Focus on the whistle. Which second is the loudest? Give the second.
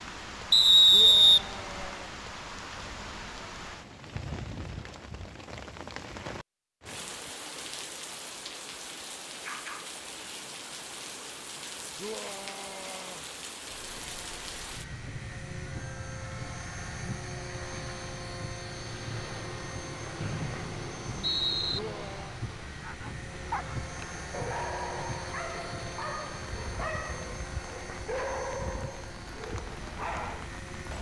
1 s.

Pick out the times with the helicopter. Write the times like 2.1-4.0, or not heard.
13.7-30.9.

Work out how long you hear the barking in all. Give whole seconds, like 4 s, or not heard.
8 s.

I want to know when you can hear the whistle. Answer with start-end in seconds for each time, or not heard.
0.5-1.9, 20.2-21.8.